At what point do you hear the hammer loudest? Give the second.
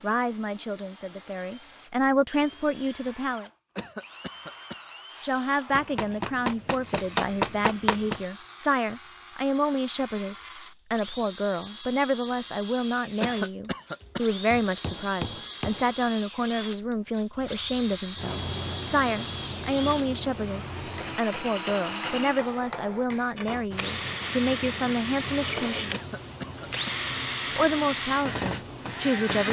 7 s.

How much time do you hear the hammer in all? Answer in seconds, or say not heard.
7 s.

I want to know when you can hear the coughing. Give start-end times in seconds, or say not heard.
3.8-4.8, 13.2-14.2, 25.9-26.9.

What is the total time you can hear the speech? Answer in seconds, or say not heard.
26 s.